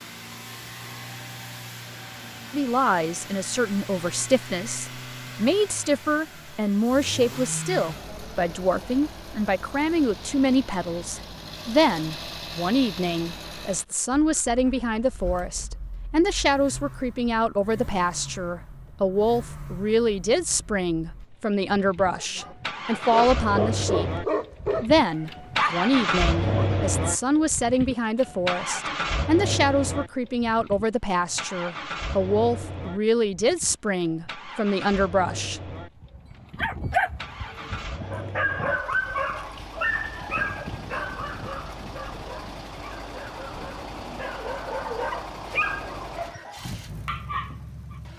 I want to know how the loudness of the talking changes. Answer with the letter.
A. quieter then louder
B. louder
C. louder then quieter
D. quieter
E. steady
E.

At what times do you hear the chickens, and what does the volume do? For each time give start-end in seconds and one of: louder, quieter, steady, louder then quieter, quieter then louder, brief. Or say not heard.
not heard.